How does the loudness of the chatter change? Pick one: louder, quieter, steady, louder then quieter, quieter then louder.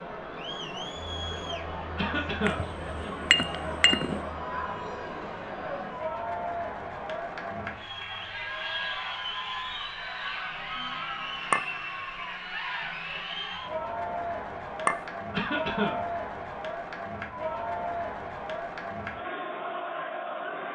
steady.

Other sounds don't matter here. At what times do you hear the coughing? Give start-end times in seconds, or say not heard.
1.9-2.6, 15.3-16.1.